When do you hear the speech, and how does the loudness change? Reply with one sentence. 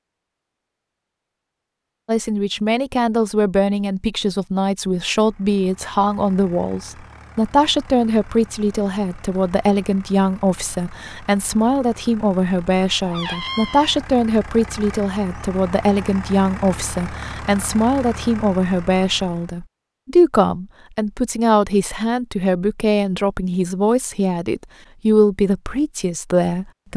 You can hear the speech from 2.0 to 26.9 s, at a steady volume.